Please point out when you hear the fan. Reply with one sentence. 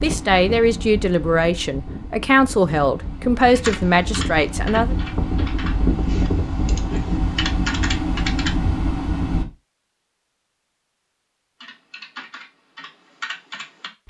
The fan can be heard from 0.0 to 9.4 s.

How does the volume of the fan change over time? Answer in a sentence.
The volume of the fan goes up.